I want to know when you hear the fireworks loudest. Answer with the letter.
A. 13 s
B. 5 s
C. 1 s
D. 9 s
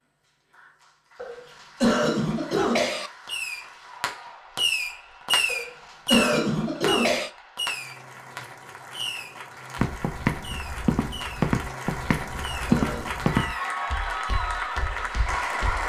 B.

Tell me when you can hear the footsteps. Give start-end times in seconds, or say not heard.
9.8-15.8.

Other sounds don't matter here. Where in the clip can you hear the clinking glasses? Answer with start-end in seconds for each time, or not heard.
not heard.